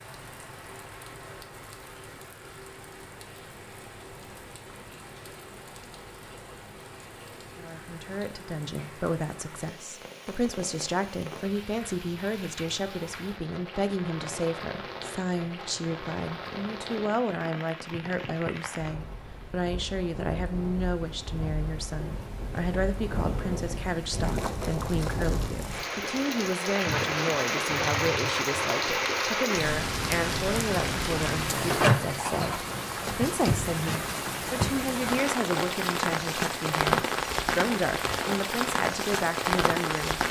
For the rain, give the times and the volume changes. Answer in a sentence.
You can hear the rain from 0.0 to 40.2 s, getting louder.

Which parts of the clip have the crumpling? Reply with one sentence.
You can hear the crumpling from 24.1 to 25.9 s.